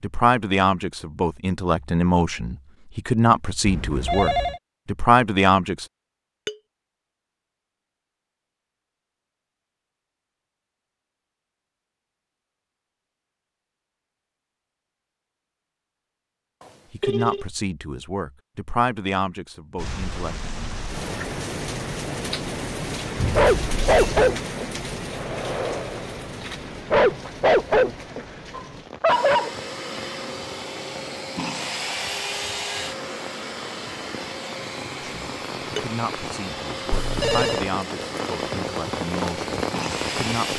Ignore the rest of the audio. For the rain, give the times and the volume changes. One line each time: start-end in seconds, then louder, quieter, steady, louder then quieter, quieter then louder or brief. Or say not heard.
19.8-40.5 quieter then louder.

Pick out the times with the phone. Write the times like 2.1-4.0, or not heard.
3.6-4.6, 16.6-17.4, 36.9-37.7.